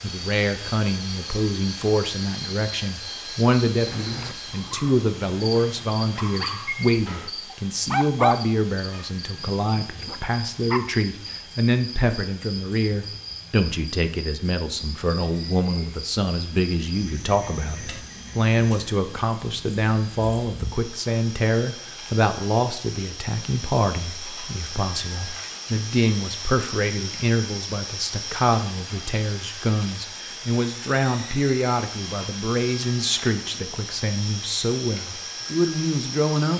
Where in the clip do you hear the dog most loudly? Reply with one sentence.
The loudest moment of the dog is at 8 seconds.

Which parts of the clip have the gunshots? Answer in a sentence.
You can't hear the gunshots here.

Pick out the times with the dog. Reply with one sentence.
You can hear the dog from 3.8 to 10.8 s.